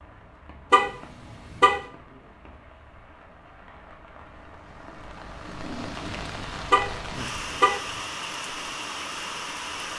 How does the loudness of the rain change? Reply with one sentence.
The loudness of the rain goes up.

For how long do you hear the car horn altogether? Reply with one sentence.
The car horn can be heard for 2 seconds in total.